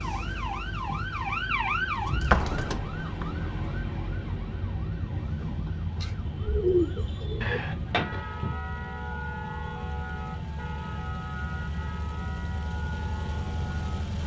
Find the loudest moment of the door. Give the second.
2 s.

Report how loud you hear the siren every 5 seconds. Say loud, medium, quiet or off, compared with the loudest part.
loud, medium, medium.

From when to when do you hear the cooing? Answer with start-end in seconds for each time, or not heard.
6.0-7.6.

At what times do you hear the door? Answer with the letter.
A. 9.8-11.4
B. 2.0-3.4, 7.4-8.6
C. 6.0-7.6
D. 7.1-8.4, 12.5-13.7
B.